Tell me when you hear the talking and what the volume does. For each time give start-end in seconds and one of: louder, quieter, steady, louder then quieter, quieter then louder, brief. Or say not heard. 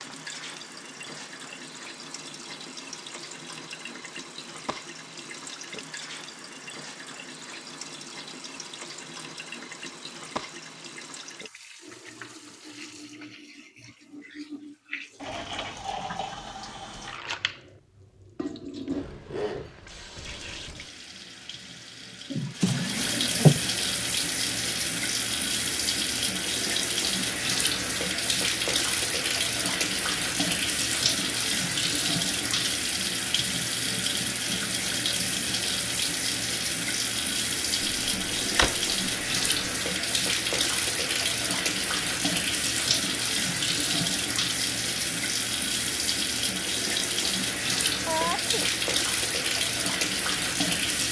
not heard.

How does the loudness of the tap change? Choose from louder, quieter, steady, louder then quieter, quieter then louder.
louder.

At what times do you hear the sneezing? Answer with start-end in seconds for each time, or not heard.
48.0-48.7.